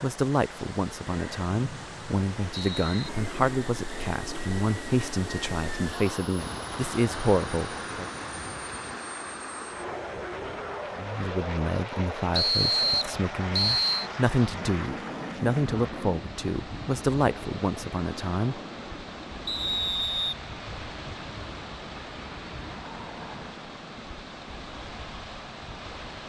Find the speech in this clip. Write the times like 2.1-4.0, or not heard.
0.0-8.1, 10.9-18.6.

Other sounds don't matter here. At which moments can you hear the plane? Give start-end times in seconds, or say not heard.
3.0-22.9.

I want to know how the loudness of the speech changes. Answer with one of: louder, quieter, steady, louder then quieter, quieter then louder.
steady.